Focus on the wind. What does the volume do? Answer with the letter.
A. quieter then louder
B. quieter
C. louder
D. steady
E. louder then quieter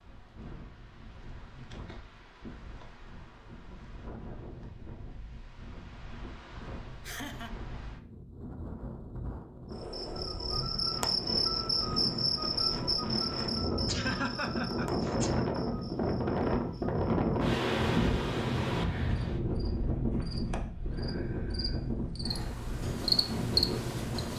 E.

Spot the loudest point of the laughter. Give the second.
14 s.